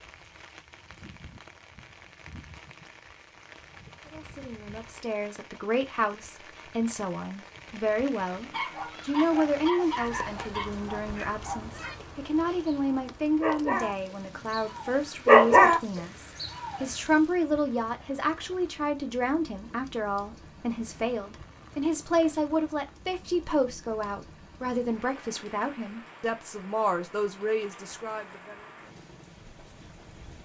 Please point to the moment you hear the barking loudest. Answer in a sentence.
The volume of the barking peaks at 15 seconds.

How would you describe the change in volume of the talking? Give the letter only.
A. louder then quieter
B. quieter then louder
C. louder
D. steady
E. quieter
D.